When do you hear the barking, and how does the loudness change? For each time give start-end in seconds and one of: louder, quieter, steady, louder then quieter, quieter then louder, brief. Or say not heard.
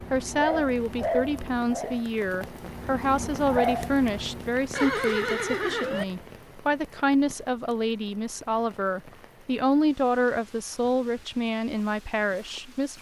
0.0-4.8 quieter then louder.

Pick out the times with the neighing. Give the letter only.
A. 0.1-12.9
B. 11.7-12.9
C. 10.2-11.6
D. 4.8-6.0
D.